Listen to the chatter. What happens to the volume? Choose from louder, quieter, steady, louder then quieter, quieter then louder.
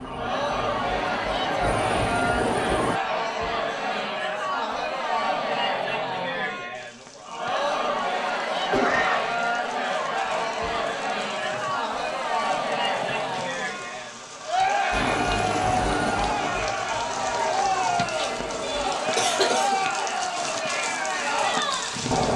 steady.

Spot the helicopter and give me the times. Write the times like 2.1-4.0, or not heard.
0.0-3.0, 14.9-19.0.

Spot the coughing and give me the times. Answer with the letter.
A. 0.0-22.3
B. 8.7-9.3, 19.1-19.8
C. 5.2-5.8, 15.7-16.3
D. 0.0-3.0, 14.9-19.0
B.